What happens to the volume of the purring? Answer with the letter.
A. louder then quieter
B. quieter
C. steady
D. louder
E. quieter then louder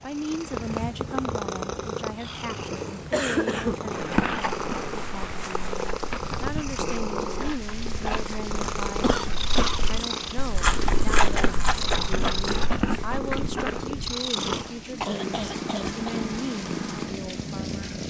C.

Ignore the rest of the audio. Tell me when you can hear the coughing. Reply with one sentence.
You can hear the coughing from 3.1 to 3.8 s, from 9.0 to 9.9 s and from 15.0 to 16.2 s.